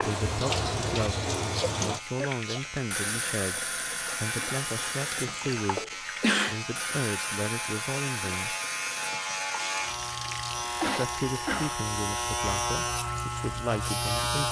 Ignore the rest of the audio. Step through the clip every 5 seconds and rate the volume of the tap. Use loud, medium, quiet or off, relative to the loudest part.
loud, medium, medium.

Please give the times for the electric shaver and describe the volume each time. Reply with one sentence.
You can hear the electric shaver from 0.1 to 14.4 s, getting louder.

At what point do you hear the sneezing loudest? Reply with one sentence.
The volume of the sneezing peaks at 6 seconds.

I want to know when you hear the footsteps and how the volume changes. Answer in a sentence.
The footsteps can't be heard in this clip.